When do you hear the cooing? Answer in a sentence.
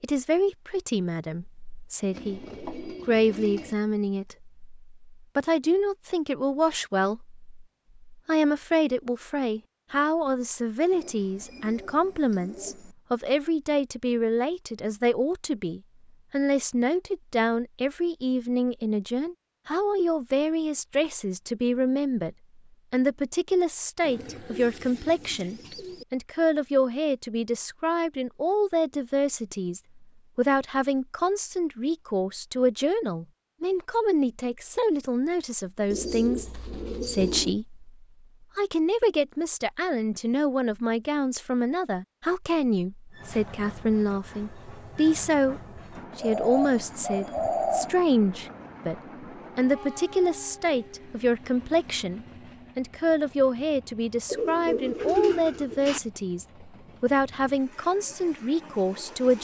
You can hear the cooing from 2.1 to 3.8 s, from 10.9 to 12.9 s, from 24.0 to 26.1 s, from 35.9 to 37.5 s, from 46.2 to 48.0 s and from 54.2 to 56.0 s.